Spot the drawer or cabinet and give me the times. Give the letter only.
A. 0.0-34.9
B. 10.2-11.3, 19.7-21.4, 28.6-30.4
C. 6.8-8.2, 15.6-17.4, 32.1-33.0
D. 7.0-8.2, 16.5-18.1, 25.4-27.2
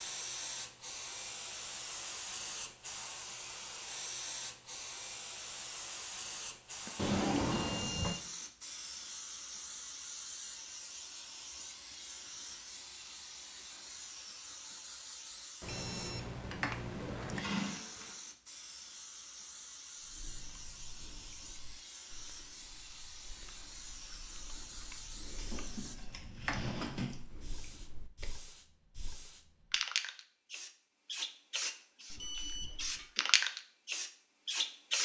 D.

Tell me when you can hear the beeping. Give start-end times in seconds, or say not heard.
6.8-8.2, 15.6-17.4, 32.1-33.0.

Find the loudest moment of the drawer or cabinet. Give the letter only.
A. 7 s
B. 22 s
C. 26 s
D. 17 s
A.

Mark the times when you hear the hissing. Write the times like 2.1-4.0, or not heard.
0.0-34.9.